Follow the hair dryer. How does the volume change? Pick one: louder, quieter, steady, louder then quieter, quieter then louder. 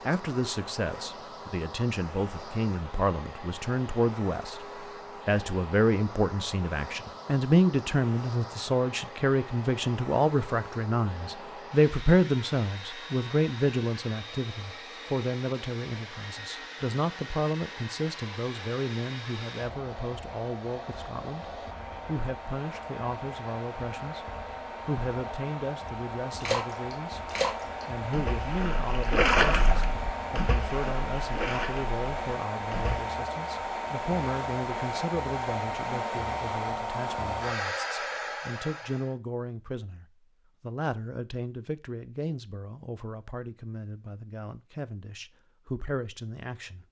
louder.